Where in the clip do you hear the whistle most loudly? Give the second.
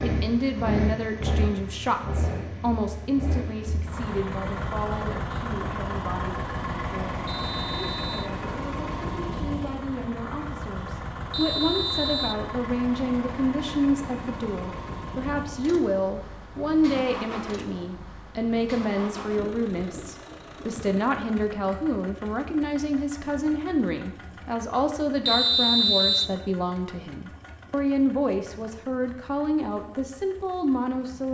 26 s.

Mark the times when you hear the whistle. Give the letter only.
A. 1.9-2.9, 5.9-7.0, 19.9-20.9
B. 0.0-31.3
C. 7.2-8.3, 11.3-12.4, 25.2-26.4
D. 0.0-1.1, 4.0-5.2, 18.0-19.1
C.